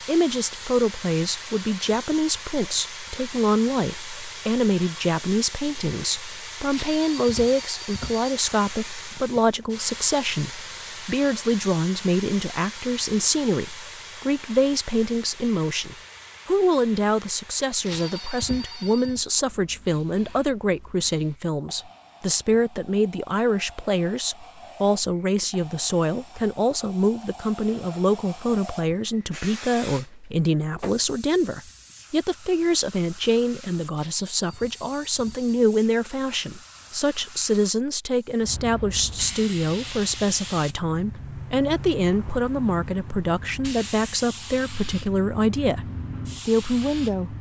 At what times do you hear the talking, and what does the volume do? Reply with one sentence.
The talking can be heard from 0.1 to 47.3 s, at a steady volume.